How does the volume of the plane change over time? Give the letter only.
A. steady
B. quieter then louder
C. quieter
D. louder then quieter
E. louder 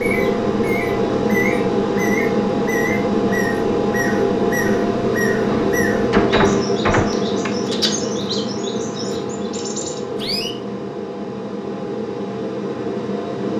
C.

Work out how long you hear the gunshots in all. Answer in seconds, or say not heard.
2 s.